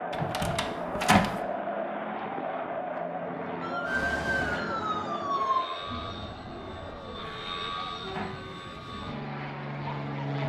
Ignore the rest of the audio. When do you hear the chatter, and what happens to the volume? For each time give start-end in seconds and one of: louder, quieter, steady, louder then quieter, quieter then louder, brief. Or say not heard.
0.0-10.4 quieter.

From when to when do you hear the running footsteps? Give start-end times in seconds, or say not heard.
not heard.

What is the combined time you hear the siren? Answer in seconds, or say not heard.
2 s.